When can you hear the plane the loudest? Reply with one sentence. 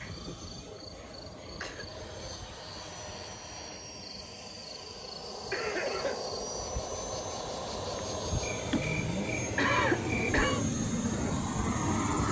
The loudest moment of the plane is at 12 seconds.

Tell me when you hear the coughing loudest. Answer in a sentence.
The volume of the coughing peaks at 10 seconds.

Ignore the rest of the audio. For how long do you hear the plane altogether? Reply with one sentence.
The plane can be heard for 12 seconds in total.